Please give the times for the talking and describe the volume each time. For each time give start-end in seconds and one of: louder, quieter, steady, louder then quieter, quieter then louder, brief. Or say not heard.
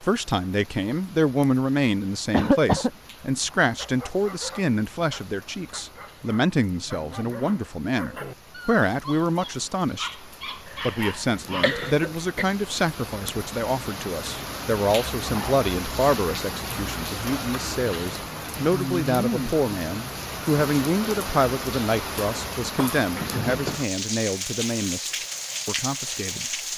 0.0-26.4 steady.